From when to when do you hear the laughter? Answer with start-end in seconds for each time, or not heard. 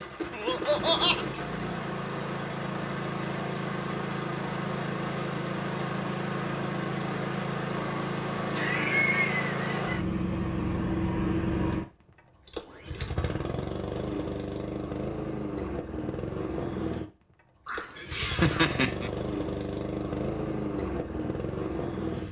0.3-1.2, 8.6-10.0, 17.6-19.1.